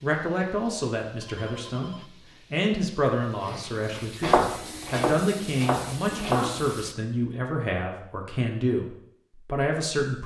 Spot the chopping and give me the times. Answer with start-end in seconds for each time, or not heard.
3.8-6.6.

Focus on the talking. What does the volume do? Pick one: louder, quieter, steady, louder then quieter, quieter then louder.
steady.